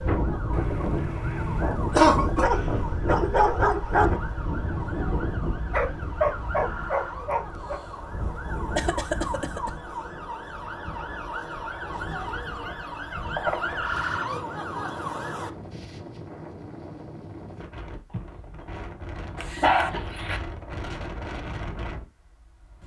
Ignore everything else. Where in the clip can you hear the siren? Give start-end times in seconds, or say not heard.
0.0-15.5.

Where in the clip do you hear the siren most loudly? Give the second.
14 s.